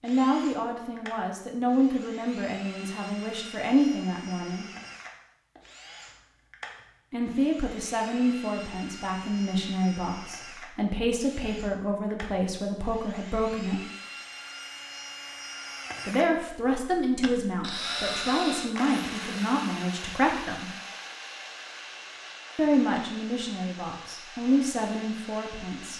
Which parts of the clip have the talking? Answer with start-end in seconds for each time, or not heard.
0.0-4.7, 7.1-13.8, 16.1-20.7, 22.6-25.9.